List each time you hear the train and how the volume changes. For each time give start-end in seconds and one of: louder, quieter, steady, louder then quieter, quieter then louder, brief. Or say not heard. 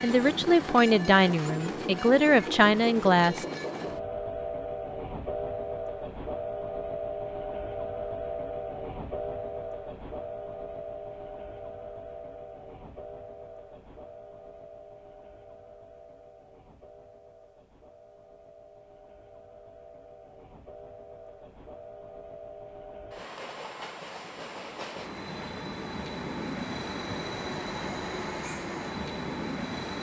0.0-29.9 quieter then louder.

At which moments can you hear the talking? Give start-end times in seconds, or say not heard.
0.0-3.5.